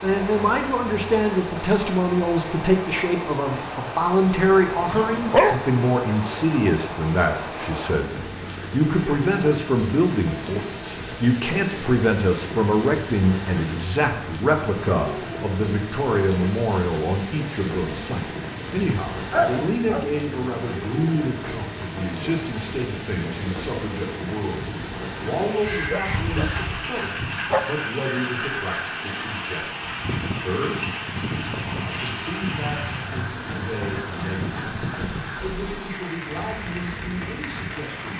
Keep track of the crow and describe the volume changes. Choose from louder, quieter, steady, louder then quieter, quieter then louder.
steady.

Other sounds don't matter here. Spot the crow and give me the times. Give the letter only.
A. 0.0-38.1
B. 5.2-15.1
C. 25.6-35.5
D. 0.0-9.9
C.